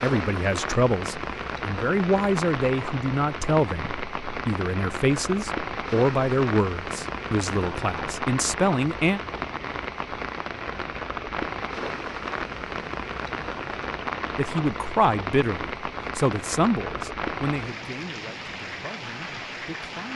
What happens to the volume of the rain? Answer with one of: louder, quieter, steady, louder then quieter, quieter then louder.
steady.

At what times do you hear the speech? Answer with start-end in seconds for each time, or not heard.
0.0-9.2, 14.3-20.1.